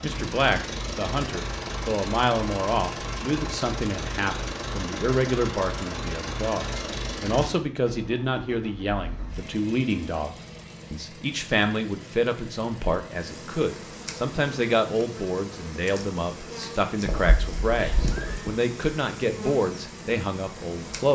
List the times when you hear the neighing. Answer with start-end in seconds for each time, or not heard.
17.1-18.6.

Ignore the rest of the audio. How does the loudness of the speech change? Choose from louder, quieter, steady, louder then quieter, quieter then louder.
steady.